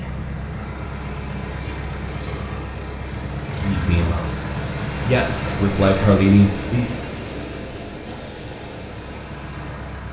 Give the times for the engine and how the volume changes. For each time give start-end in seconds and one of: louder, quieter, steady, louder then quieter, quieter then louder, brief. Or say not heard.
0.0-10.0 quieter.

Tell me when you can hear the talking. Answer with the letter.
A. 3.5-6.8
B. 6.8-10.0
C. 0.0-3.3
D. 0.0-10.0
A.